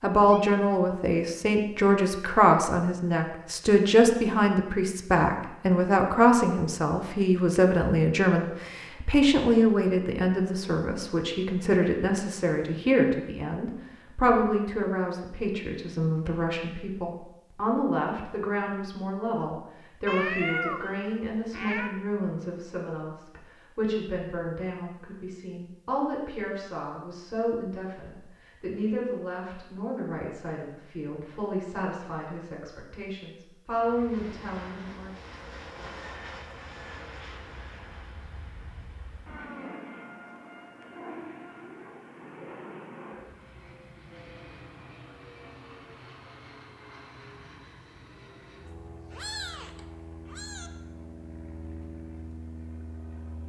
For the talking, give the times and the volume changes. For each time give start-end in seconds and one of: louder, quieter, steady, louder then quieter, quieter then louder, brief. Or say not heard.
0.0-35.1 quieter.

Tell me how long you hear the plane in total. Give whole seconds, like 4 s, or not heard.
20 s.